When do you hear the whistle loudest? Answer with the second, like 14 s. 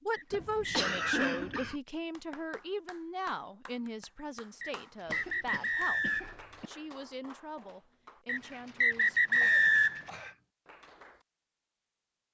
10 s.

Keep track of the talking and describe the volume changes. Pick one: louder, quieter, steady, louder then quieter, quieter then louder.
quieter.